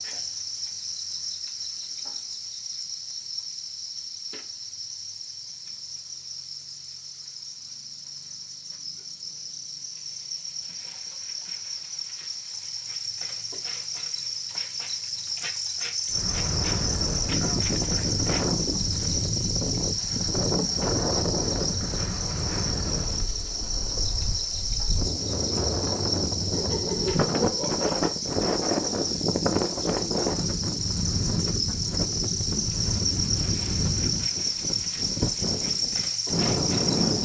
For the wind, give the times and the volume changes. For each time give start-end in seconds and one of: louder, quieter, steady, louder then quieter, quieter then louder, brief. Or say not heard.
16.1-37.2 steady.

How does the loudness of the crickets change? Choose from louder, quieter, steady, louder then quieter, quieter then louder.
louder.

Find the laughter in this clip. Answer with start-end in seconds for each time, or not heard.
26.4-27.8.